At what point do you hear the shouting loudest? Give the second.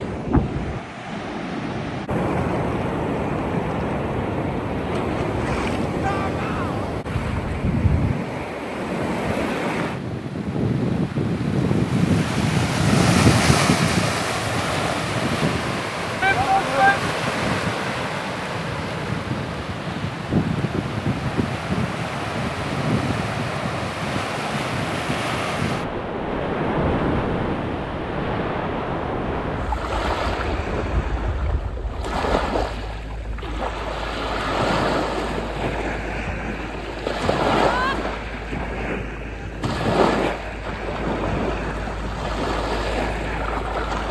17 s.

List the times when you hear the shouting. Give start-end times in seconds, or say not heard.
6.0-6.8, 16.2-17.0, 37.5-38.0.